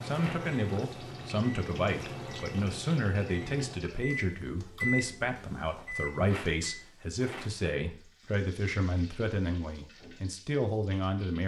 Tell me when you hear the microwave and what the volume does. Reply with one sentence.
You can hear the microwave from 0.0 to 6.8 s, getting louder then quieter.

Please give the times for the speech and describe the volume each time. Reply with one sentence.
The speech can be heard from 0.0 to 11.4 s, at a steady volume.